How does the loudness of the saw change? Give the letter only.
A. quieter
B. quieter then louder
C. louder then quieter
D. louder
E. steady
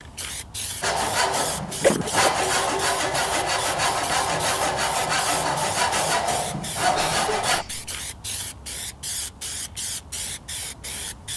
E.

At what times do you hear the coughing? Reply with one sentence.
The coughing can be heard from 1.8 to 2.4 s and from 6.8 to 7.9 s.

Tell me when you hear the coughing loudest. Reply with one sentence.
The loudest moment of the coughing is at 2 seconds.